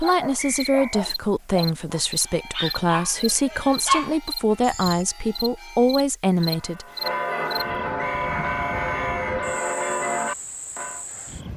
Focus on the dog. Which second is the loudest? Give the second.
4 s.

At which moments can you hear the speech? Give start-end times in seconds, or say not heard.
0.0-6.8.